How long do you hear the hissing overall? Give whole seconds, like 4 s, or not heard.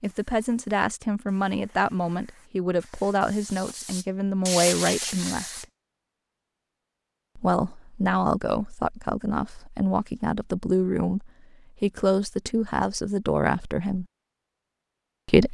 6 s.